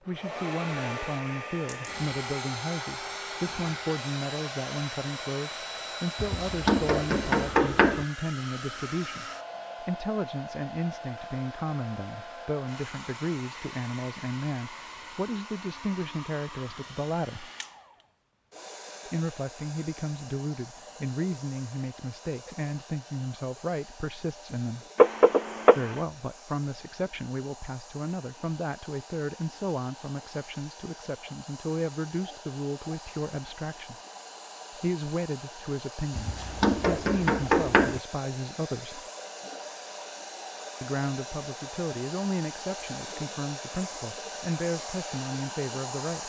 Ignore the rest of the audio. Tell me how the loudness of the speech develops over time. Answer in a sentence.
The volume of the speech stays about the same.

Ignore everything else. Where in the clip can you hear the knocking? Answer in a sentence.
The knocking can be heard from 6.2 to 8.1 s, from 24.9 to 26.0 s and from 36.1 to 38.0 s.